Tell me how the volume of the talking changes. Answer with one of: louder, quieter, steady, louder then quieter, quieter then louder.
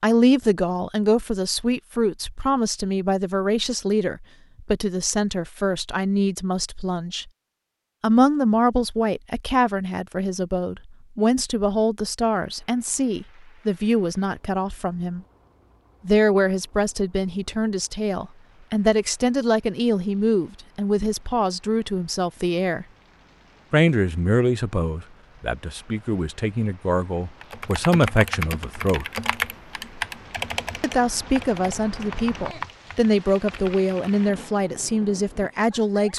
steady.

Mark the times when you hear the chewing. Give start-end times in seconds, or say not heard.
not heard.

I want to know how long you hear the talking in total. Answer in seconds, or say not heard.
32 s.